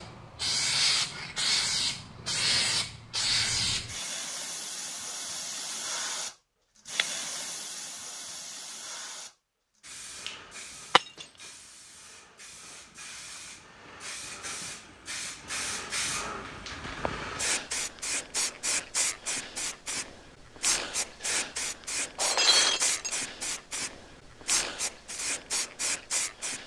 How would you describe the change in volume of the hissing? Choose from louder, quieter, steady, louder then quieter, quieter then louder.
quieter then louder.